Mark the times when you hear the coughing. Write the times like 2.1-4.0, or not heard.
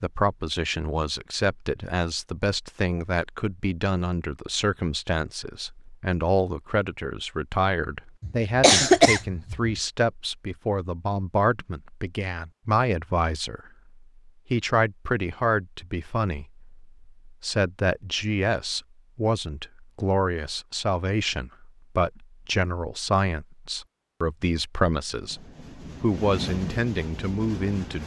8.2-9.6.